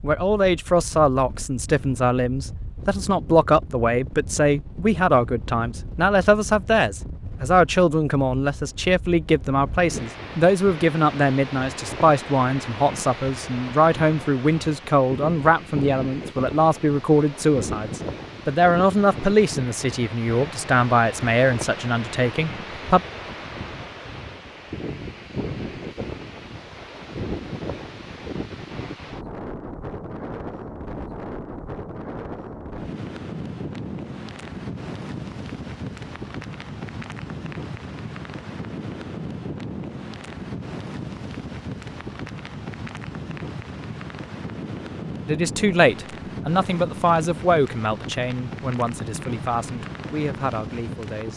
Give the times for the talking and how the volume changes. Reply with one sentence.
The talking can be heard from 0.0 to 23.0 s, at a steady volume; and from 45.2 to 51.3 s, getting quieter.